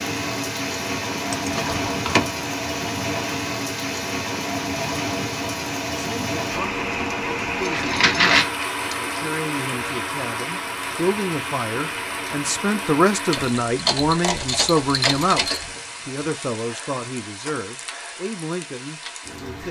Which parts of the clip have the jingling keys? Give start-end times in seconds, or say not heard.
1.3-2.2, 7.4-9.2, 13.3-15.7.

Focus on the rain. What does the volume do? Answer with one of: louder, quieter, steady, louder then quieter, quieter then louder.
quieter.